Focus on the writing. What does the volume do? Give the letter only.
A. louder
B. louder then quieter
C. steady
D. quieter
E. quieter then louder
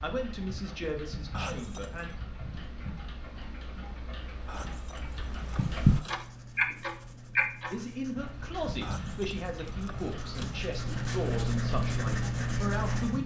A.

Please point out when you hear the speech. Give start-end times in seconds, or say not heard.
0.0-2.1, 7.7-13.2.